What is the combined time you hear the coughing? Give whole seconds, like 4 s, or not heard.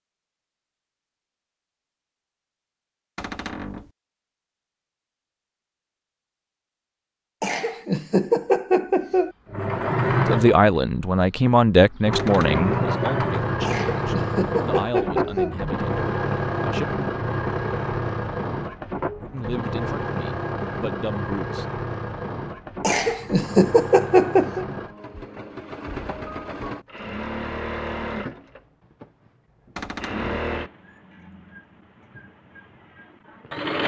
6 s.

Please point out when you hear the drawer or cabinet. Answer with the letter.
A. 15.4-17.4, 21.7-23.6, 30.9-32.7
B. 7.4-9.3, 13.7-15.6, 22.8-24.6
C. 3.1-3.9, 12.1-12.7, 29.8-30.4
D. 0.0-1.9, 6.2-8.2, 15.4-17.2
C.